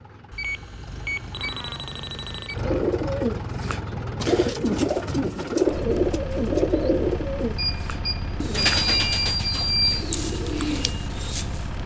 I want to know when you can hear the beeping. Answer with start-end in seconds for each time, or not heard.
0.3-2.6, 7.5-10.1.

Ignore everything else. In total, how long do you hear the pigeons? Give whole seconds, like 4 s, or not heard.
9 s.